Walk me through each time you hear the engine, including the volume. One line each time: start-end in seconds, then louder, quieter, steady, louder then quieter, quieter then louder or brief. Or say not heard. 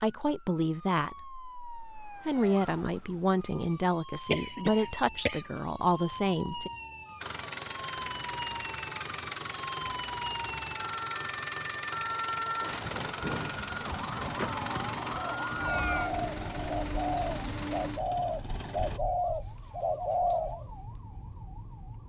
7.2-19.0 steady.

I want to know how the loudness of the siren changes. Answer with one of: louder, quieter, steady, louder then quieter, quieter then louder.
louder then quieter.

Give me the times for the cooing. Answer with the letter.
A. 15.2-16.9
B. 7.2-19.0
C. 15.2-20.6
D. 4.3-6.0
C.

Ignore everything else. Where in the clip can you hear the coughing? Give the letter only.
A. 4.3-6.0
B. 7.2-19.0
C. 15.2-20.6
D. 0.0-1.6
A.